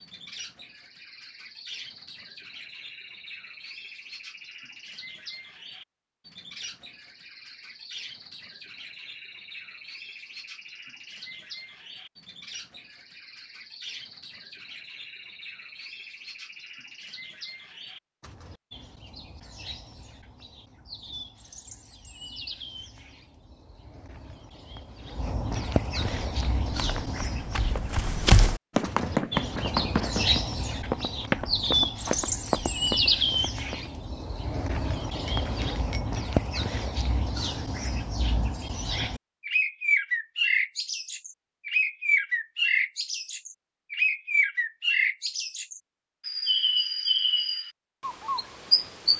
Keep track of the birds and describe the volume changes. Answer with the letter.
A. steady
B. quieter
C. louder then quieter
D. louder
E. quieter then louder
D.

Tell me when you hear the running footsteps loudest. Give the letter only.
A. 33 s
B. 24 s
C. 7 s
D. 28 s
D.